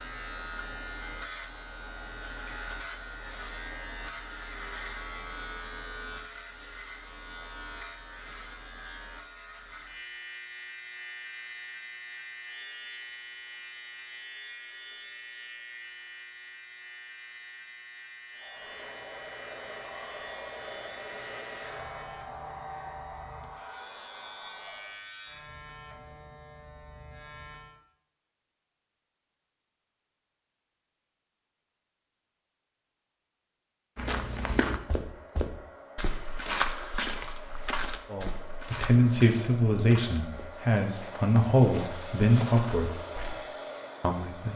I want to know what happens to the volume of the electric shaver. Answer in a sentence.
The loudness of the electric shaver goes down.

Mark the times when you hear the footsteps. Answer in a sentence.
The footsteps can be heard from 34.0 to 43.4 s.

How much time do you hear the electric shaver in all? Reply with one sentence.
The electric shaver can be heard for 28 seconds in total.